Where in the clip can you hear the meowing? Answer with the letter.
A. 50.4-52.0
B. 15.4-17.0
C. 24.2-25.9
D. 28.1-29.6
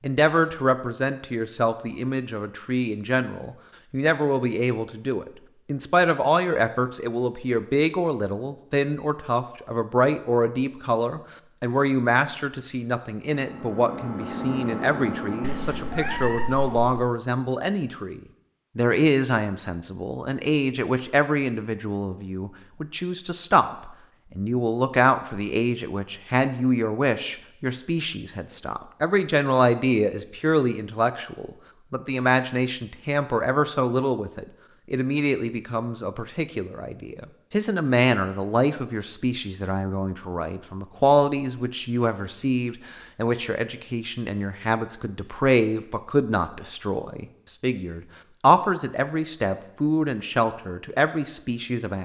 B.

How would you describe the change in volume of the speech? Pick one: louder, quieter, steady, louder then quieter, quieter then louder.
steady.